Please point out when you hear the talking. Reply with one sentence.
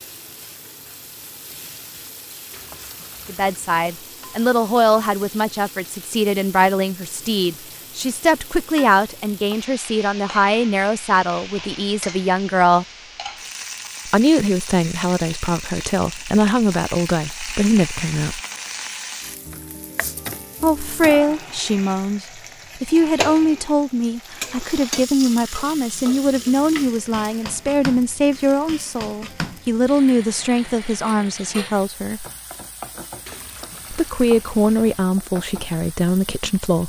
You can hear the talking from 3.2 to 12.8 s, from 14.1 to 18.4 s, from 20.6 to 32.2 s and from 33.9 to 36.8 s.